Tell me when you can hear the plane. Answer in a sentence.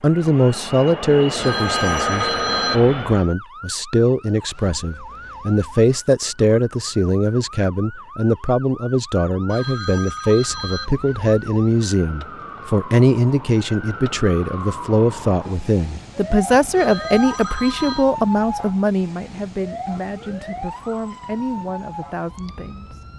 The plane can be heard from 0.0 to 3.3 s.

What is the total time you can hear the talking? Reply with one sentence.
The talking can be heard for 23 seconds in total.